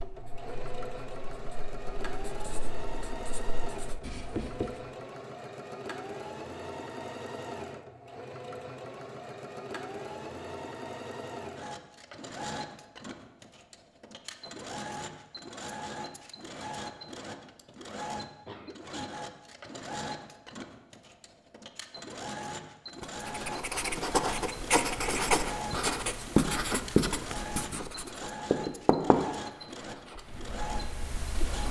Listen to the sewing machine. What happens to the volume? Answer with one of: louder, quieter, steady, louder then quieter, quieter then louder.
steady.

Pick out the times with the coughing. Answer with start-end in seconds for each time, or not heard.
18.4-19.2.